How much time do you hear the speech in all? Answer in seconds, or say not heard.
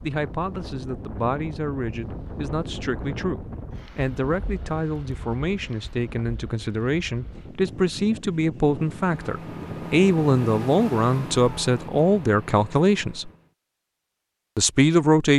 14 s.